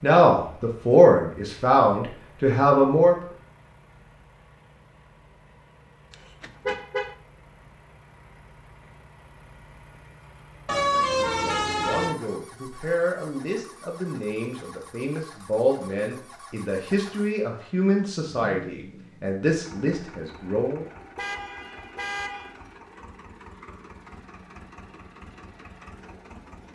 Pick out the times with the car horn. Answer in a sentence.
The car horn can be heard from 6.1 to 7.2 s, from 10.7 to 12.2 s and from 21.1 to 22.6 s.